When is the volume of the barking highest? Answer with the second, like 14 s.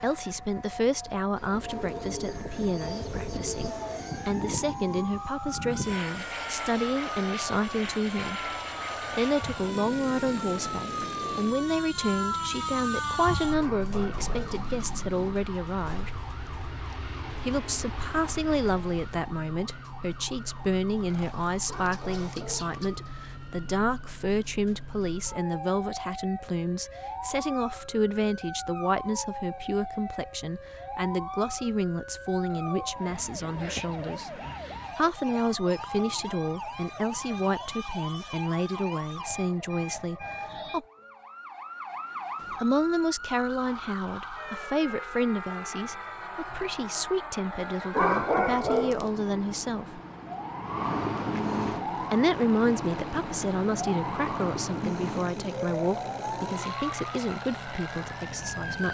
48 s.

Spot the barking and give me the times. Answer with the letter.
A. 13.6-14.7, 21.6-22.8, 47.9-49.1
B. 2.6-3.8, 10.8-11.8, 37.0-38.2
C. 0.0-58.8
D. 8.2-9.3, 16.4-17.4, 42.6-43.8
A.